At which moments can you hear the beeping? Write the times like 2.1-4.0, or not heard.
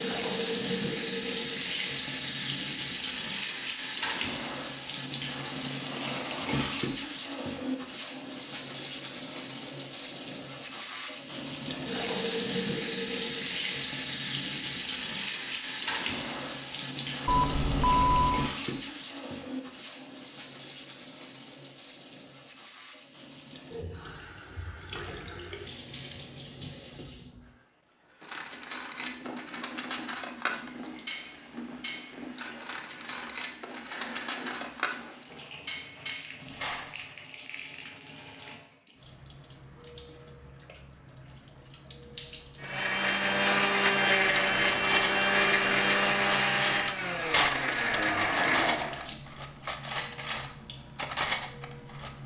17.2-18.5.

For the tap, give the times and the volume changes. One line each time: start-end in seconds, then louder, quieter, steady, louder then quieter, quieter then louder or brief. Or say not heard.
0.0-52.2 quieter.